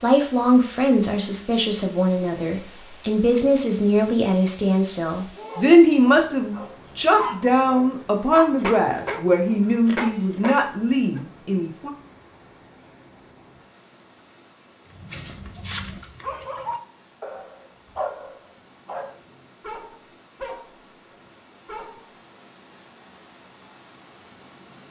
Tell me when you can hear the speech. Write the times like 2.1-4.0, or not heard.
0.0-11.9.